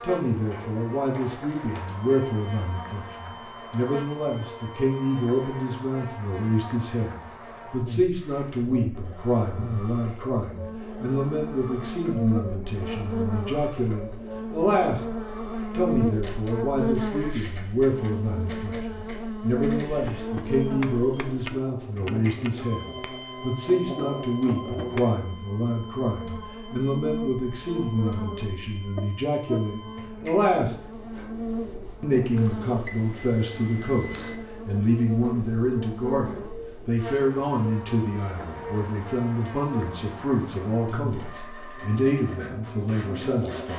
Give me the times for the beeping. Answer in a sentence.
You can hear the beeping from 32.4 to 34.4 s.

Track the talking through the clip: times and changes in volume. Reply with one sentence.
You can hear the talking from 0.0 to 15.1 s, at a steady volume; from 15.7 to 30.8 s, at a steady volume; and from 32.0 to 43.7 s, at a steady volume.